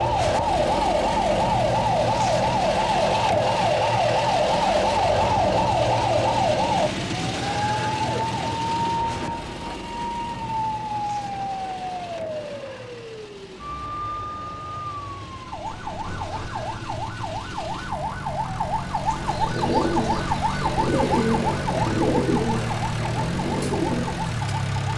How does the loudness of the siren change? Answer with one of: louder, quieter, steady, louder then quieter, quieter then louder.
quieter.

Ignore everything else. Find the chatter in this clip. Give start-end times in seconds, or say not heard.
not heard.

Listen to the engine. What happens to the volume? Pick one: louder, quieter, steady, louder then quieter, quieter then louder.
quieter then louder.